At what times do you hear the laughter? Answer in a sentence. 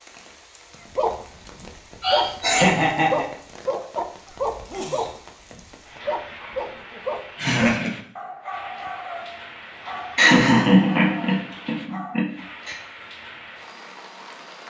You can hear the laughter from 2.0 to 3.2 s, from 7.3 to 7.9 s and from 10.2 to 12.8 s.